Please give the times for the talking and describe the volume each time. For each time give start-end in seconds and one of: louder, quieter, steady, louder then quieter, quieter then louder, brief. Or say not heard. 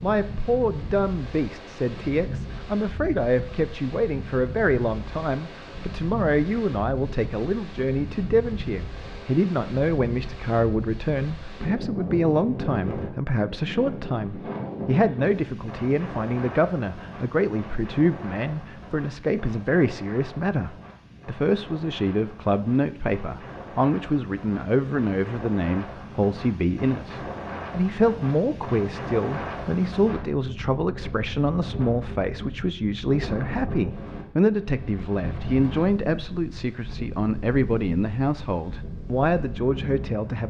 0.0-40.4 steady.